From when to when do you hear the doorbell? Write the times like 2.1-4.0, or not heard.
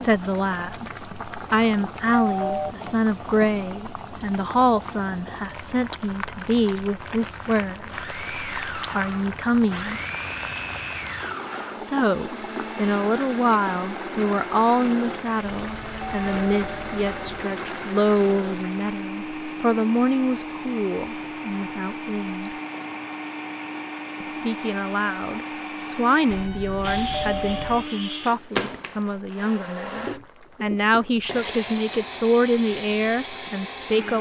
2.2-2.8, 15.7-17.4, 26.3-27.9.